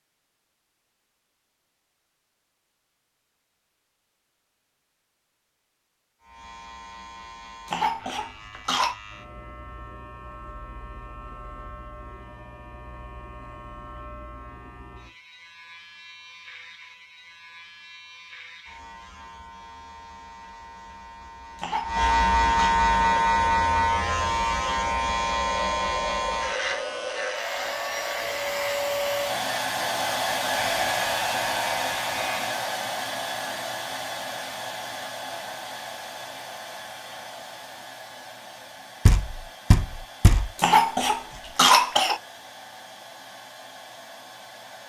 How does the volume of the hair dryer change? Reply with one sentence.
The loudness of the hair dryer goes up, then down.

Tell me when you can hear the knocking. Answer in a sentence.
The knocking can be heard from 39.0 to 40.5 s.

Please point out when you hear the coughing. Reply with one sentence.
You can hear the coughing from 7.7 to 8.9 s, from 21.6 to 22.8 s and from 40.5 to 42.2 s.